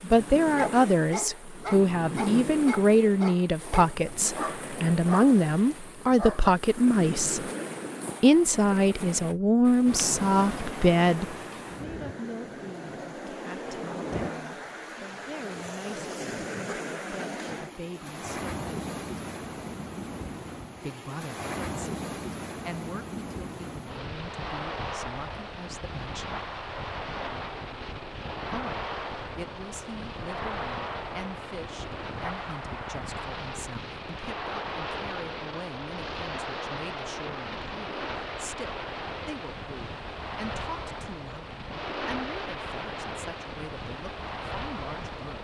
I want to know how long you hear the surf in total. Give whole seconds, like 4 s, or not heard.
45 s.